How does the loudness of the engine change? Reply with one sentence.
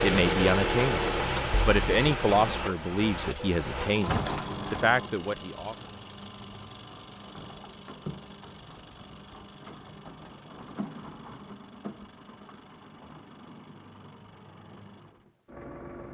The loudness of the engine goes down.